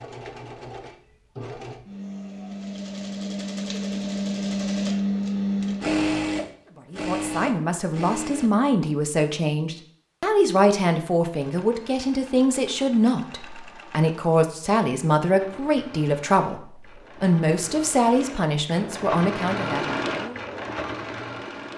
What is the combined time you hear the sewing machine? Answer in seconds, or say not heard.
19 s.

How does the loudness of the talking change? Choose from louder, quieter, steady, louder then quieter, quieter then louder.
steady.